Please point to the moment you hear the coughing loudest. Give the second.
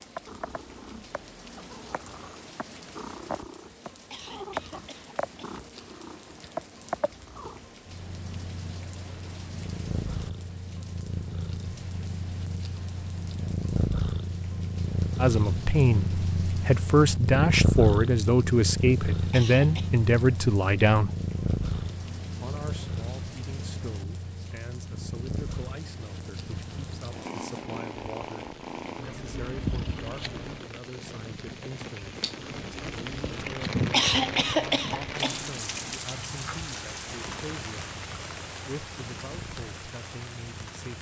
34 s.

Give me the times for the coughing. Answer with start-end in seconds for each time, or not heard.
4.0-5.6, 19.2-19.9, 33.8-35.9.